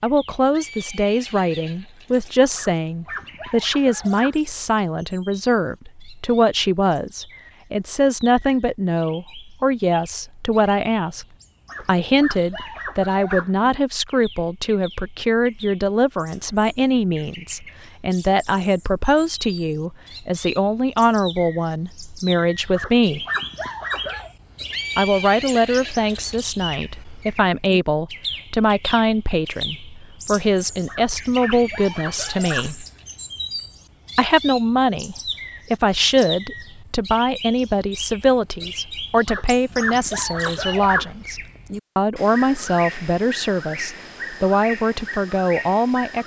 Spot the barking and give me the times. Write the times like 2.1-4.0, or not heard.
2.5-4.4, 11.7-13.5, 22.8-24.3, 30.9-32.7, 39.2-41.1.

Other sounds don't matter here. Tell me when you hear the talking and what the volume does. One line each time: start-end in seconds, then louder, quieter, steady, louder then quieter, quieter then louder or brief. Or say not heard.
0.0-23.2 steady
24.9-32.9 steady
34.1-46.2 steady.